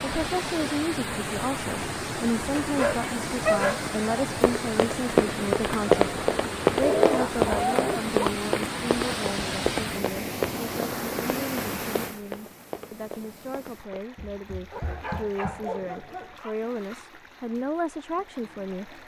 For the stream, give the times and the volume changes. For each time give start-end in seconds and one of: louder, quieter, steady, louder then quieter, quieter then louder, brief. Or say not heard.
0.0-19.0 quieter.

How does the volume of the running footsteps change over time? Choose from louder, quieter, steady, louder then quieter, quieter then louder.
quieter.